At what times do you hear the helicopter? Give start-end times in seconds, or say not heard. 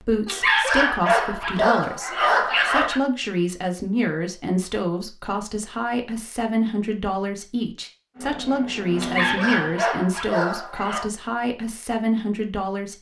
8.2-9.8.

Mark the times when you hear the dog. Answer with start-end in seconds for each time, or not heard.
0.2-3.0, 8.9-11.1.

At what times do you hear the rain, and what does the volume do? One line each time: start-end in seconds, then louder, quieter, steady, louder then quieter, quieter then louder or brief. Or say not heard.
not heard.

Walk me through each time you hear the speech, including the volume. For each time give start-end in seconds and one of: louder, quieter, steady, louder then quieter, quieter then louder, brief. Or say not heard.
0.0-12.9 steady.